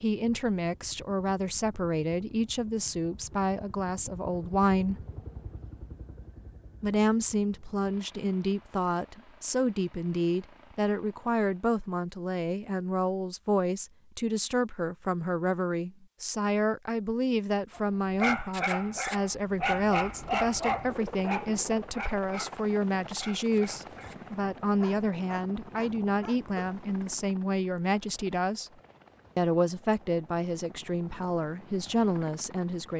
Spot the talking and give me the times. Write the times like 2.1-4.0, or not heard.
0.0-5.0, 6.8-28.7, 29.4-32.9.